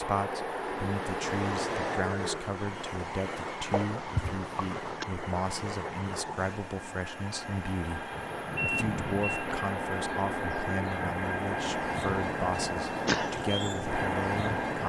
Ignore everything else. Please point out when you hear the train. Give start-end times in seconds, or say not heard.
0.0-14.8.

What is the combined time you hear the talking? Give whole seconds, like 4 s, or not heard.
15 s.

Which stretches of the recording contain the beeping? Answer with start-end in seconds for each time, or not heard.
8.6-9.4.